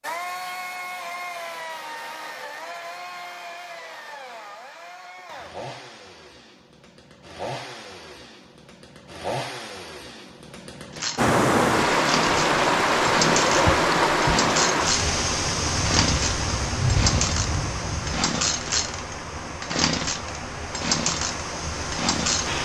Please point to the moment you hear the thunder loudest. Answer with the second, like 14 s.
17 s.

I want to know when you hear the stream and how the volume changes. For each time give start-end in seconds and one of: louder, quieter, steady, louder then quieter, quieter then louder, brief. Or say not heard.
11.2-22.6 quieter.